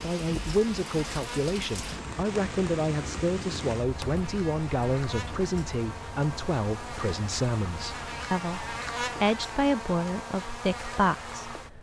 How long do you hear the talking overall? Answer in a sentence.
You can hear the talking for 12 seconds altogether.